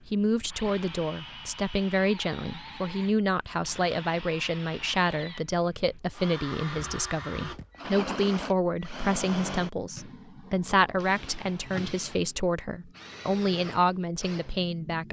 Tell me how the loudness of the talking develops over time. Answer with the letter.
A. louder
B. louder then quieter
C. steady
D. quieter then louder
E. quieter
C.